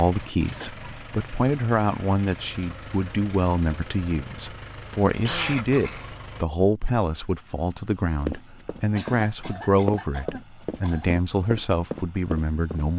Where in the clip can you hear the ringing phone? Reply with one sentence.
You can't hear the ringing phone here.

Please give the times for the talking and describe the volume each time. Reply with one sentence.
The talking can be heard from 0.0 to 12.9 s, at a steady volume.